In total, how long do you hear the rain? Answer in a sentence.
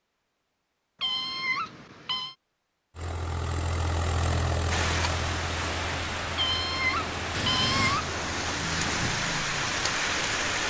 You can hear the rain for 6 seconds altogether.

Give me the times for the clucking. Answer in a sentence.
The clucking can't be heard in this clip.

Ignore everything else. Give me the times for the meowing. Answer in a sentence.
The meowing can be heard from 1.0 to 2.4 s and from 6.3 to 8.1 s.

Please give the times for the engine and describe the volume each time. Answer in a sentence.
You can hear the engine from 3.0 to 9.2 s, getting quieter.